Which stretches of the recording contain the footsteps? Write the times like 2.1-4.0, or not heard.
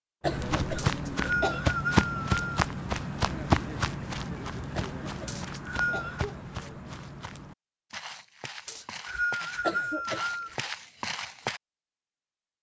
0.2-11.6.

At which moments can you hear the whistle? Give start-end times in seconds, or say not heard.
0.8-2.4, 5.2-6.2, 8.7-10.6.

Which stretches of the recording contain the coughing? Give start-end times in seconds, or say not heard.
0.2-1.6, 5.0-6.4, 9.6-10.7.